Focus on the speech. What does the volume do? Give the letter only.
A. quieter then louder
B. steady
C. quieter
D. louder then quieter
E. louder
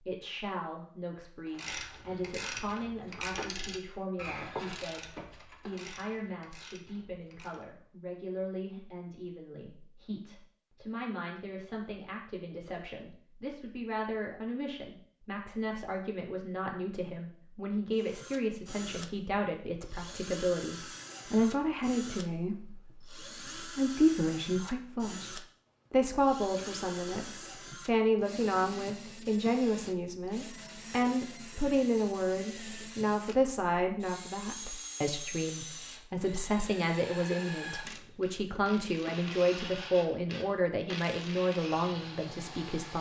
E.